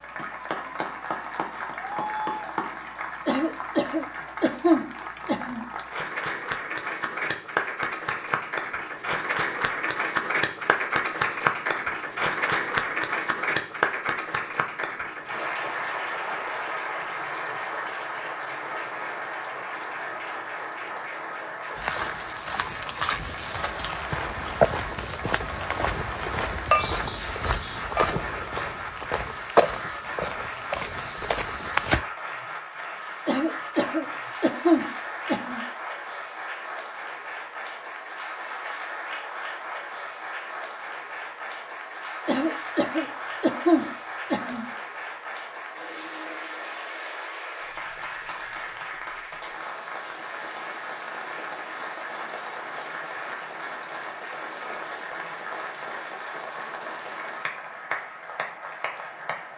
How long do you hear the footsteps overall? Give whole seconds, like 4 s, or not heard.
10 s.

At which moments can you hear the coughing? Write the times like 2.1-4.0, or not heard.
3.2-5.7, 33.2-35.6, 42.2-44.6.